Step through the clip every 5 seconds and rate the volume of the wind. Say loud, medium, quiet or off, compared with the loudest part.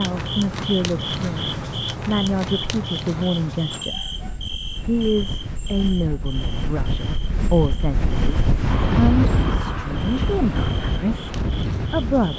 medium, loud, loud.